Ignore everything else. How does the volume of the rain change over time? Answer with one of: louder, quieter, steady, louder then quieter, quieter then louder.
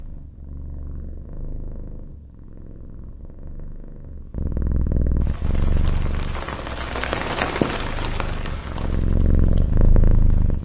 louder then quieter.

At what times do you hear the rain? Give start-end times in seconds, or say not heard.
5.2-10.6.